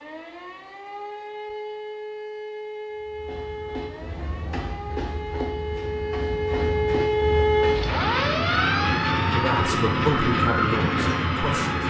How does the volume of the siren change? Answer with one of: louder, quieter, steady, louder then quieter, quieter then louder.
louder then quieter.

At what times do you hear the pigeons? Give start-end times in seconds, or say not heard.
not heard.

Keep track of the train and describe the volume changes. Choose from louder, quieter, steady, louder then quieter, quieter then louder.
louder.